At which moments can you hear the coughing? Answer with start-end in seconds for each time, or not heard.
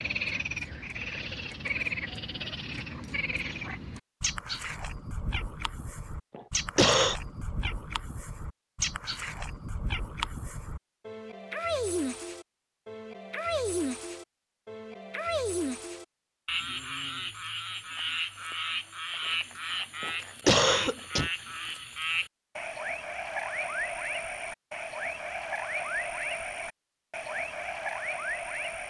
6.3-7.2, 20.0-21.3.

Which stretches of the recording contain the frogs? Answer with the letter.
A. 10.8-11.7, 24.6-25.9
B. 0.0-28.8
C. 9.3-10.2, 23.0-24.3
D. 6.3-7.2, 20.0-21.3
B.